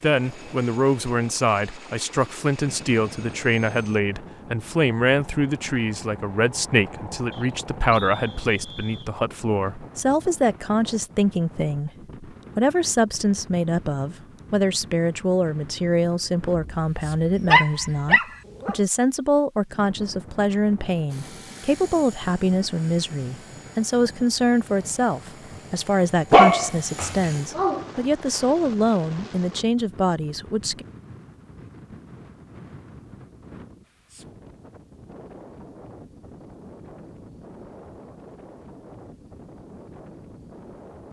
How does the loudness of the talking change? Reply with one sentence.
The loudness of the talking stays about the same.